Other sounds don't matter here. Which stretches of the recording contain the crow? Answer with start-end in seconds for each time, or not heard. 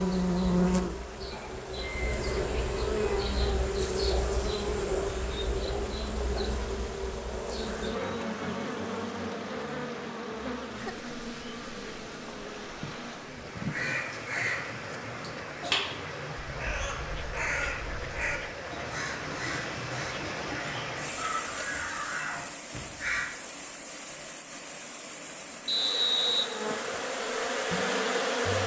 13.7-23.2.